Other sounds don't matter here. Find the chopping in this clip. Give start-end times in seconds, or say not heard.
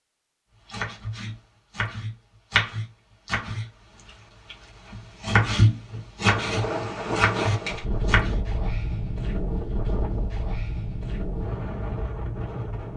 0.7-8.4.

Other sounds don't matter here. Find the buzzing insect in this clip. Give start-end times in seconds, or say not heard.
not heard.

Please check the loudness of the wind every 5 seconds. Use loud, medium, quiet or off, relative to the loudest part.
off, loud, loud.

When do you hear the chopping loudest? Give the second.
6 s.